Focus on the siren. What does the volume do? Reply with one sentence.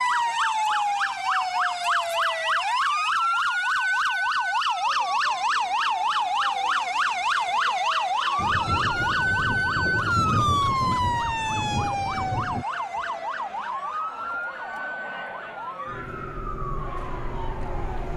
The volume of the siren goes down.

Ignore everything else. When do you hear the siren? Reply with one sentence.
The siren can be heard from 0.0 to 18.1 s.